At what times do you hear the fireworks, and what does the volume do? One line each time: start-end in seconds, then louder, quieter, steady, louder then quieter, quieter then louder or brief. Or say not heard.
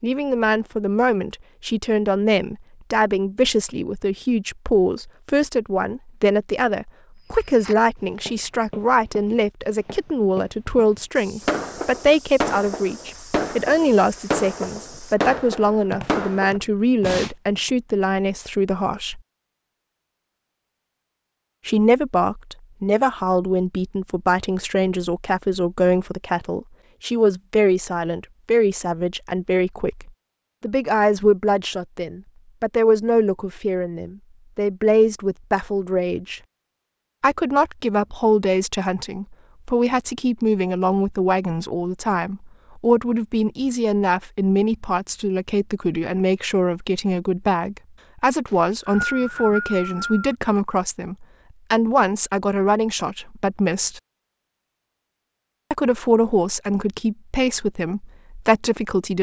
11.4-17.3 steady.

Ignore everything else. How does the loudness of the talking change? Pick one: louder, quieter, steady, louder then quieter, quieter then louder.
steady.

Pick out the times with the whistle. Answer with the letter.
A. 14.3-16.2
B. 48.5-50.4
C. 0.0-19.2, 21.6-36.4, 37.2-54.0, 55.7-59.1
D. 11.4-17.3
B.